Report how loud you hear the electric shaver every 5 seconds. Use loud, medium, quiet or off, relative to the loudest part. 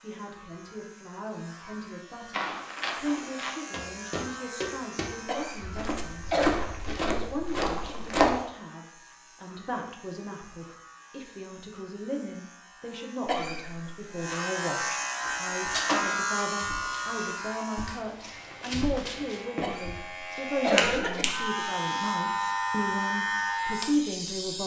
quiet, quiet, medium, loud, loud.